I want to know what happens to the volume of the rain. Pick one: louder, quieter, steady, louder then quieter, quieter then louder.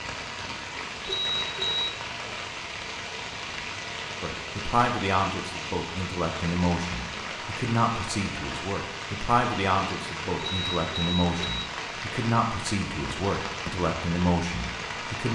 steady.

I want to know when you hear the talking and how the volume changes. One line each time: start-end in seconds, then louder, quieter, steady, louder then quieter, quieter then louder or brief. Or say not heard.
4.2-15.2 steady.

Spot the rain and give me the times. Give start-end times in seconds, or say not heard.
0.0-15.2.